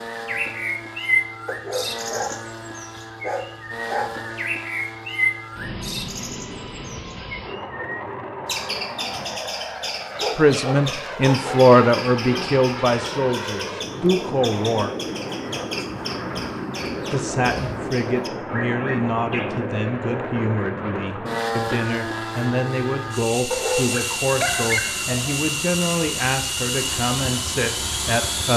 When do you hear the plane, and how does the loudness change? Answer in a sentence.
You can hear the plane from 0.0 to 28.5 s, getting louder.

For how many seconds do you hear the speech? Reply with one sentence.
The speech can be heard for 16 seconds in total.